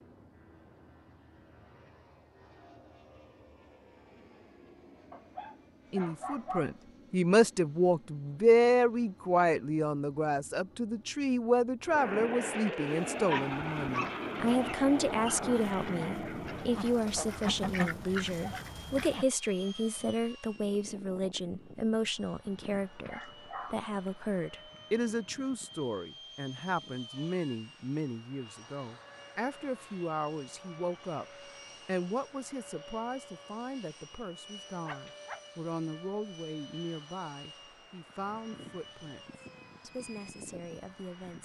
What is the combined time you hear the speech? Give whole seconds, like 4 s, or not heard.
34 s.